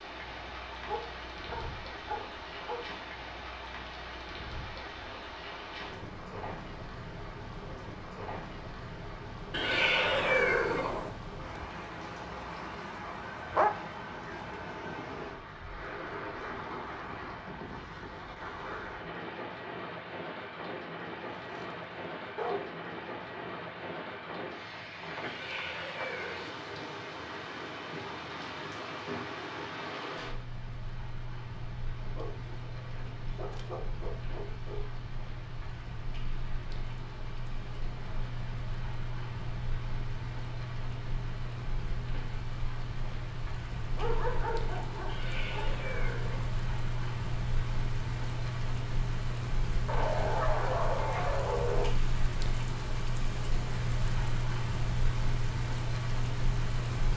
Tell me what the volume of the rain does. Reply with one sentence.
The volume of the rain goes up.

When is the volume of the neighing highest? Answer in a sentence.
The volume of the neighing peaks at 10 seconds.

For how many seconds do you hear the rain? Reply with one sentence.
The rain can be heard for 57 seconds in total.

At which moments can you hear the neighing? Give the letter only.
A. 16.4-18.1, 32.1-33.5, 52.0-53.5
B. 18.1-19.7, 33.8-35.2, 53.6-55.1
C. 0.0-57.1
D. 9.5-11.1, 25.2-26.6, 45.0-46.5
D.